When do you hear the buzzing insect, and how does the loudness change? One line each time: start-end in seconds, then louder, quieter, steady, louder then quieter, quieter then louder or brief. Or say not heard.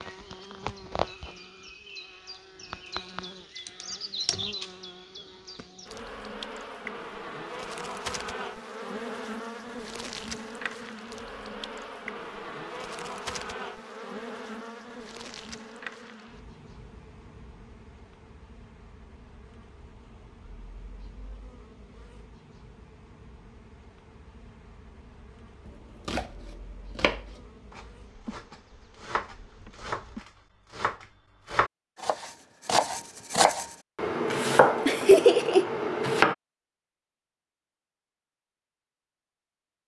0.0-30.2 quieter.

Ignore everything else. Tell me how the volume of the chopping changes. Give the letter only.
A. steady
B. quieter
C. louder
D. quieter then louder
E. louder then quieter
C.